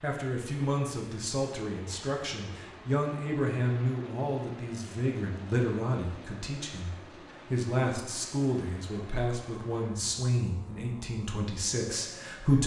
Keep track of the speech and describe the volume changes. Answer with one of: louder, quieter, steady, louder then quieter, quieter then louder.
steady.